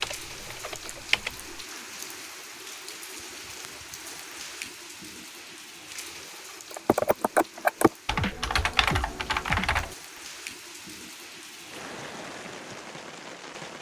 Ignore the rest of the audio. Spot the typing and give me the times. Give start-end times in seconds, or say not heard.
0.0-1.6, 6.7-9.9.